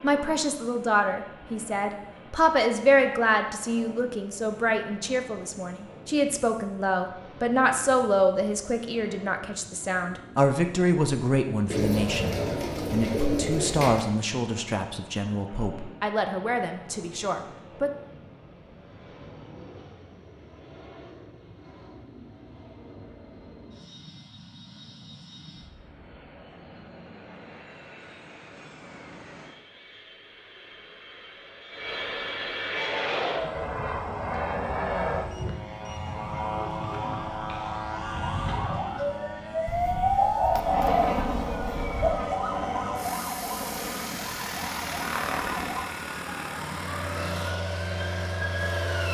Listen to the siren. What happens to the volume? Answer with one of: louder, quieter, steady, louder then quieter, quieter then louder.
louder then quieter.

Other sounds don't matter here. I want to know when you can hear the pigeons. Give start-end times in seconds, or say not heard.
11.7-14.1, 39.6-42.1.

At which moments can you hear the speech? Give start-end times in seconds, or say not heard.
0.0-17.9.